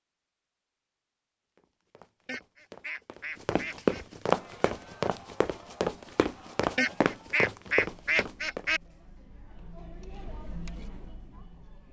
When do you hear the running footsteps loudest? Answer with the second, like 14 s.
4 s.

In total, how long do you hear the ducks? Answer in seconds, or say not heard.
4 s.